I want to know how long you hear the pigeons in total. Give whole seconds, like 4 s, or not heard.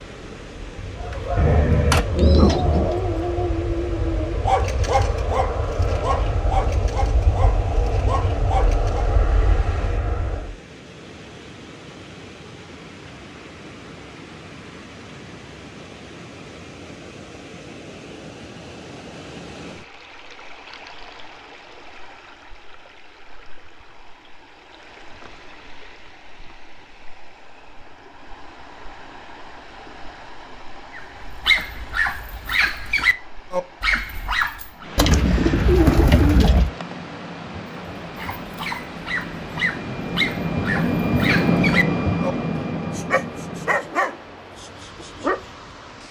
3 s.